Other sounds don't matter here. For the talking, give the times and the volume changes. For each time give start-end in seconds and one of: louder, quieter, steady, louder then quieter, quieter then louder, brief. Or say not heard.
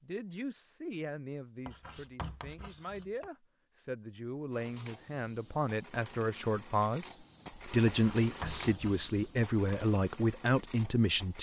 0.0-11.3 louder.